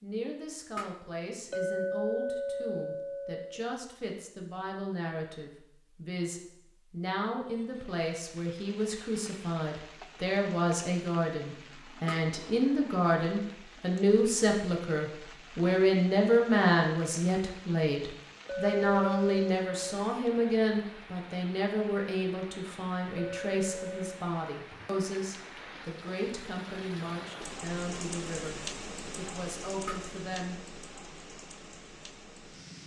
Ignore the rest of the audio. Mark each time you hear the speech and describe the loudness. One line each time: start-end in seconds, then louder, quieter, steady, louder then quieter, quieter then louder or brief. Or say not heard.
0.0-31.1 louder then quieter.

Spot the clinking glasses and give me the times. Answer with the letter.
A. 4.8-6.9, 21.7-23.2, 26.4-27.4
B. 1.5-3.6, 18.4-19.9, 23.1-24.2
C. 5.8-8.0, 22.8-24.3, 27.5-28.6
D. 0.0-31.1
B.